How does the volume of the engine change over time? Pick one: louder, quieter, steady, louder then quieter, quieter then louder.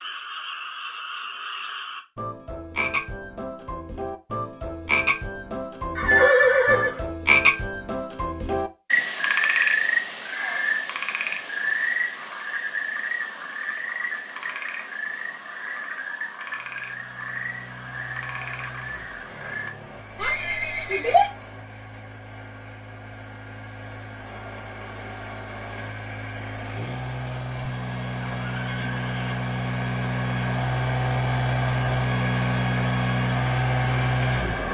louder.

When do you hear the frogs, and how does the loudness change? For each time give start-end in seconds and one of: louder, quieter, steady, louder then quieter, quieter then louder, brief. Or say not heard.
0.0-19.8 louder then quieter.